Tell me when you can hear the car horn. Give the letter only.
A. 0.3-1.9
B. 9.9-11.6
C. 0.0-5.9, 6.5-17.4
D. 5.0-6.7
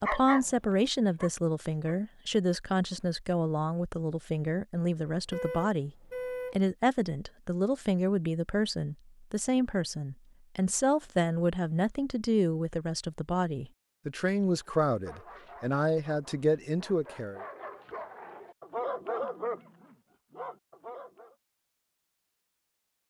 D.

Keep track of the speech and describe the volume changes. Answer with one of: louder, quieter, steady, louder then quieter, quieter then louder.
steady.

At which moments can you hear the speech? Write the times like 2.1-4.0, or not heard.
0.0-5.9, 6.5-17.4.